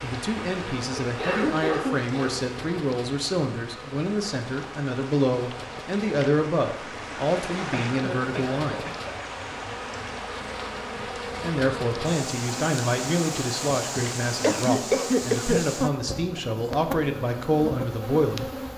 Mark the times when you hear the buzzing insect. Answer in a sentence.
The buzzing insect can be heard from 0.0 to 18.7 s.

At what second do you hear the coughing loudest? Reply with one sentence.
The loudest moment of the coughing is at 15 seconds.